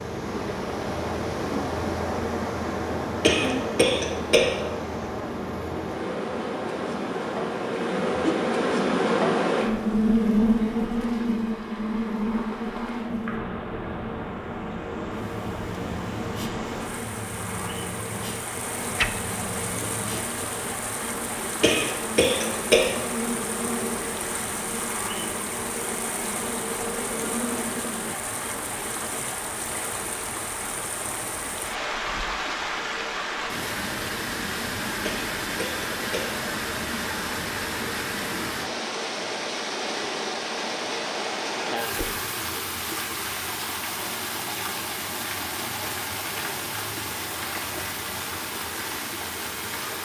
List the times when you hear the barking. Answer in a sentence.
You can't hear the barking here.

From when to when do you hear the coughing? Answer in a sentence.
The coughing can be heard from 3.2 to 4.8 s, from 21.6 to 23.1 s and from 35.0 to 36.4 s.